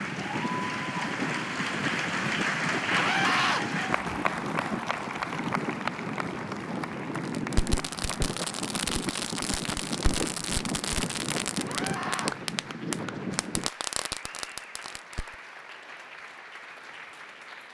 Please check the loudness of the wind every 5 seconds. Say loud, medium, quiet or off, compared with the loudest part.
loud, loud, loud, off.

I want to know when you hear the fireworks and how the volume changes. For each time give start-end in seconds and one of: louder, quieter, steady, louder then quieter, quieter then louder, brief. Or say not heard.
7.2-15.3 steady.